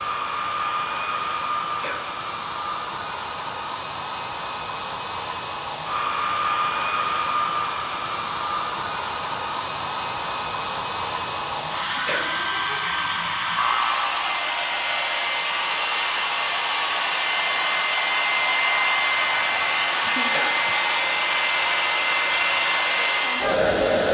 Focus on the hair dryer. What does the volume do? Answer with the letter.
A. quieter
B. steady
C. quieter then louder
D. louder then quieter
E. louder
E.